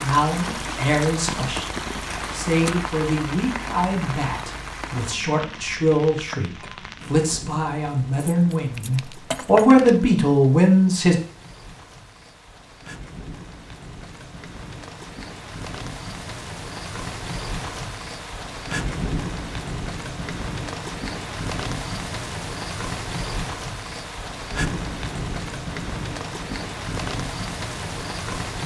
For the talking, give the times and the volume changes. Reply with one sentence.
The talking can be heard from 0.0 to 11.2 s, getting louder.